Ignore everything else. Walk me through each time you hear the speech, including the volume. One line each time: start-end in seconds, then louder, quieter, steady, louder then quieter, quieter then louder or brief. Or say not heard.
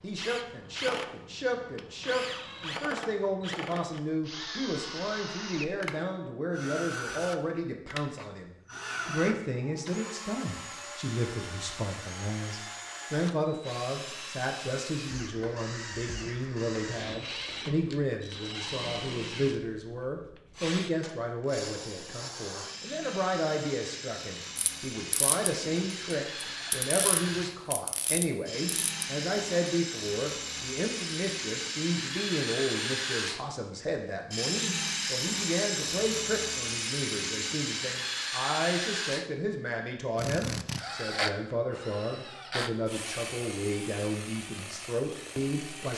0.0-45.9 steady.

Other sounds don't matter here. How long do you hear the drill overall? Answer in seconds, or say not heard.
46 s.